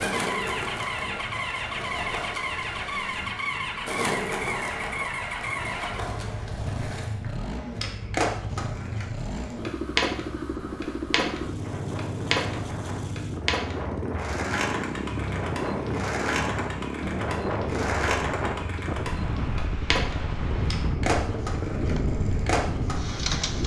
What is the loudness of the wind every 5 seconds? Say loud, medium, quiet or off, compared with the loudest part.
quiet, quiet, medium, loud, loud.